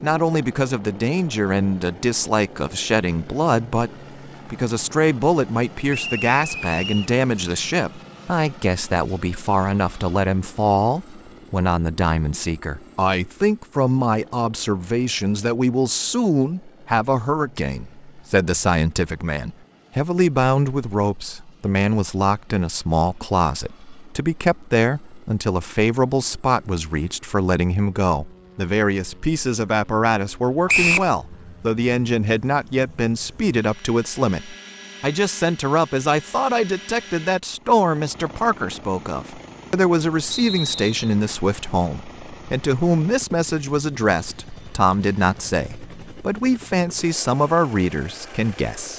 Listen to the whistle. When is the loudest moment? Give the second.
31 s.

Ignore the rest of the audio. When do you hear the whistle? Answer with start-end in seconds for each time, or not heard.
5.9-7.1, 30.6-31.1, 40.3-41.1.